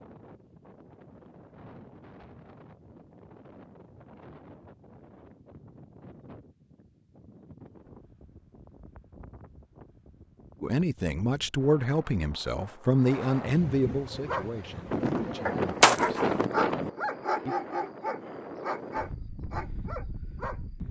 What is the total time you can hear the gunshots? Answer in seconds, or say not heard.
2 s.